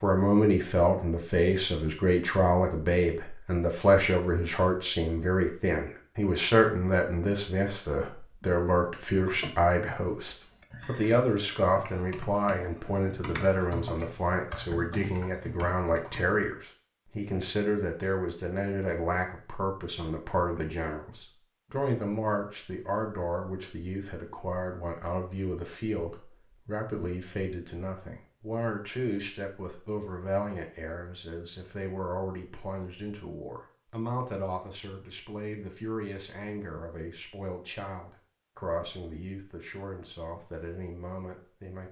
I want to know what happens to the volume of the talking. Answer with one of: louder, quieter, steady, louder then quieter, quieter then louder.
quieter.